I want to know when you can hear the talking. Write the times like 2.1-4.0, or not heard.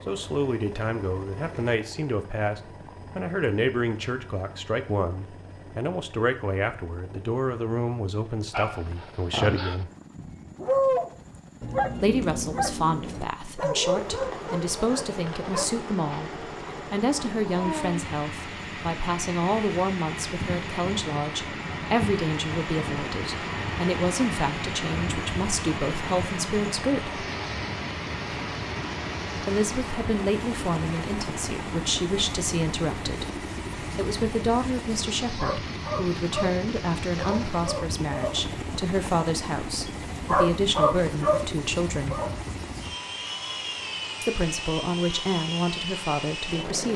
0.1-9.9, 12.0-27.2, 29.4-42.2, 44.2-46.9.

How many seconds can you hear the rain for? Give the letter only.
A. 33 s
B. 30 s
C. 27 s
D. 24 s
A.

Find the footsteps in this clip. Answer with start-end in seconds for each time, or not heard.
not heard.